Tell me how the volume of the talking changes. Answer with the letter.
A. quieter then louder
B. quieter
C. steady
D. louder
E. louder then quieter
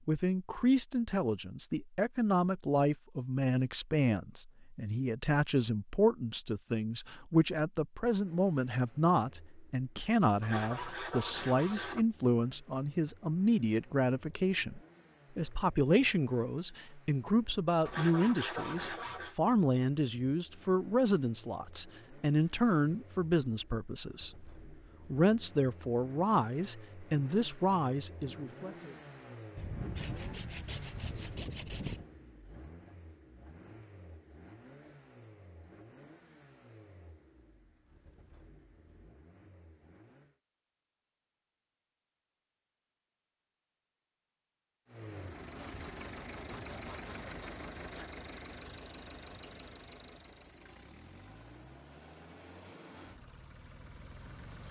C.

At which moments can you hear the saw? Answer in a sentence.
You can hear the saw from 10.4 to 12.1 s, from 17.9 to 19.4 s, from 29.6 to 32.0 s and from 45.5 to 48.2 s.